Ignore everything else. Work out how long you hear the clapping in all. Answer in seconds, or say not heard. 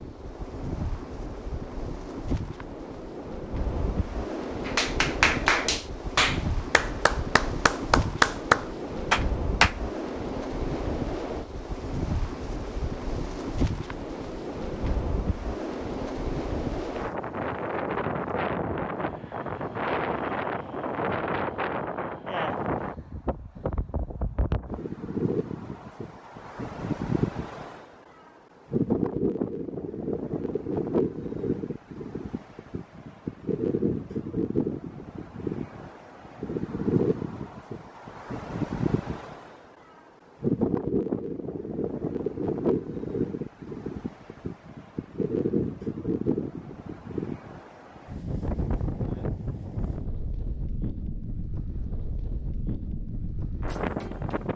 5 s.